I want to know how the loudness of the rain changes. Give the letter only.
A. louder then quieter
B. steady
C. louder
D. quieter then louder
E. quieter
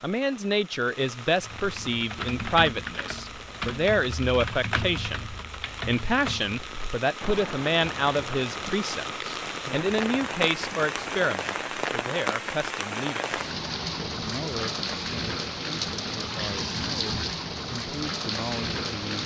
C.